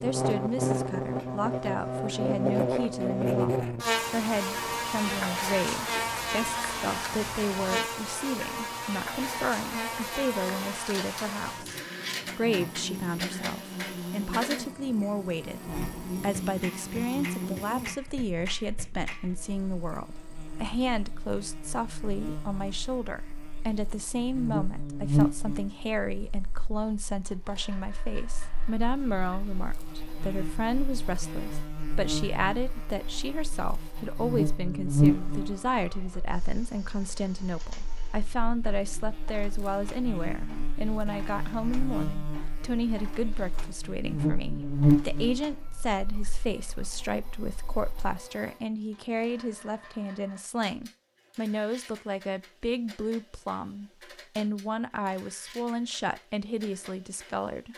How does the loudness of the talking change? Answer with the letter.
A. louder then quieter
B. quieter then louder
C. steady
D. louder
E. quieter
C.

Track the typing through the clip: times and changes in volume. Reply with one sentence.
The typing can't be heard in this clip.